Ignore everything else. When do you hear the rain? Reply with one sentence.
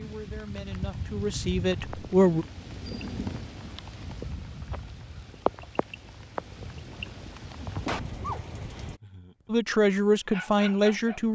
You can hear the rain from 0.0 to 9.0 s.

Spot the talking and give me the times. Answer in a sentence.
The talking can be heard from 0.0 to 2.5 s and from 9.5 to 11.3 s.